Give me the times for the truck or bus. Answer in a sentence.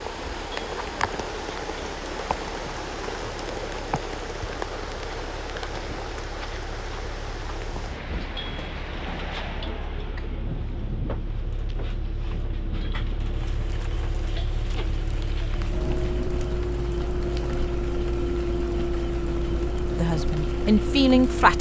You can hear the truck or bus from 0.0 to 21.5 s.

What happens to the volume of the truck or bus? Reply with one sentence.
The volume of the truck or bus goes up.